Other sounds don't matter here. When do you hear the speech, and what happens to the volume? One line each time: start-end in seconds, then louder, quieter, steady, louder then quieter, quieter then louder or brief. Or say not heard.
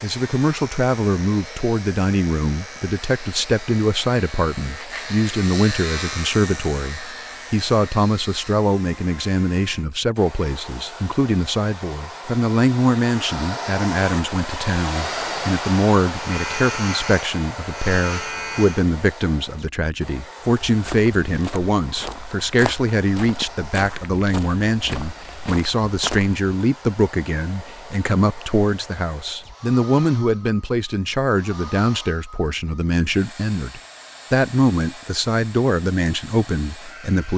0.0-37.3 steady.